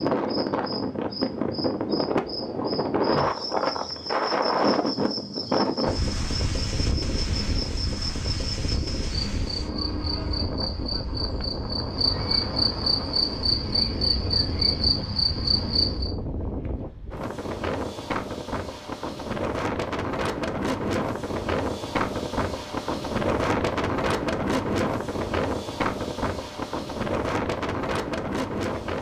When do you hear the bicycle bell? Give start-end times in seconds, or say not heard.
not heard.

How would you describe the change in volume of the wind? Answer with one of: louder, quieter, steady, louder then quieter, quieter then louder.
quieter then louder.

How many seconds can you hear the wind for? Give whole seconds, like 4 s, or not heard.
29 s.